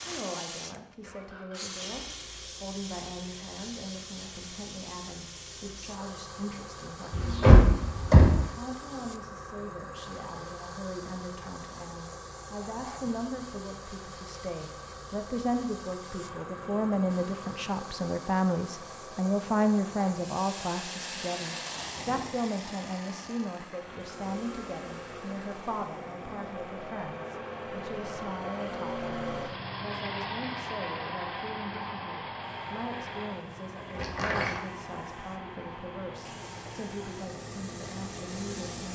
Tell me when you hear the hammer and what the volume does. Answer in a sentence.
You can't hear the hammer here.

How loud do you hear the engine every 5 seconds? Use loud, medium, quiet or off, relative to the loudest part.
quiet, quiet, quiet, medium, medium, loud, loud, medium.